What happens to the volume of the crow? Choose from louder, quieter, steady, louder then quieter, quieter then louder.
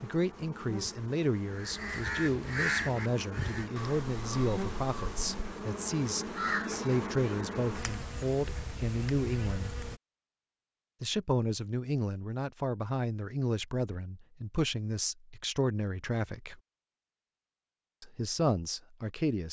quieter then louder.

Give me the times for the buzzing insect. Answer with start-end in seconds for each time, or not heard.
0.0-10.0.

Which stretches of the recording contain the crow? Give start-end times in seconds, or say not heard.
1.5-7.0.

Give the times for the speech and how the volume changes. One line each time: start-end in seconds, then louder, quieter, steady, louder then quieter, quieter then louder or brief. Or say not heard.
0.0-9.8 steady
11.0-16.6 steady
18.0-19.4 brief.